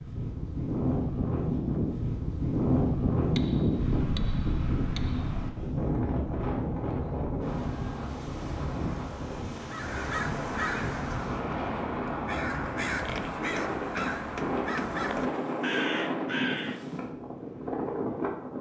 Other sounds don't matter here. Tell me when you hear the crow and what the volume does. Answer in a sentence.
You can hear the crow from 9.6 to 16.9 s, at a steady volume.